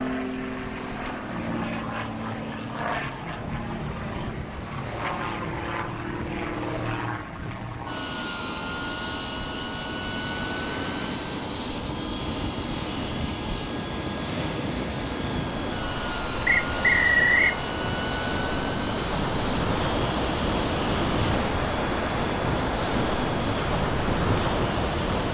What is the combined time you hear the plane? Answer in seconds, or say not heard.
25 s.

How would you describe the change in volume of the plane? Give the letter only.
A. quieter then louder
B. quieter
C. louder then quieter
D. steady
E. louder
D.